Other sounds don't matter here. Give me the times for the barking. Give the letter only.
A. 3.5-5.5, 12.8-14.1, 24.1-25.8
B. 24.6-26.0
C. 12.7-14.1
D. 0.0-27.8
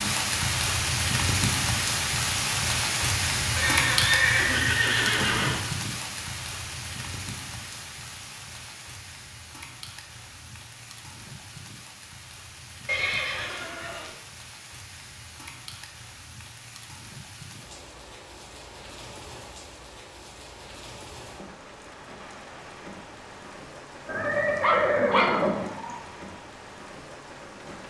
B.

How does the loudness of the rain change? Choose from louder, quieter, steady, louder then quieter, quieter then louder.
quieter.